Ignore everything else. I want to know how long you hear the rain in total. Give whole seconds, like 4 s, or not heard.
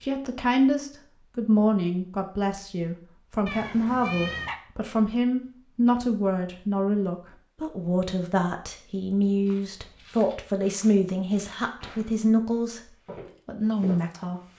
not heard.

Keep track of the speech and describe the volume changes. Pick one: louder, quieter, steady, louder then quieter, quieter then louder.
steady.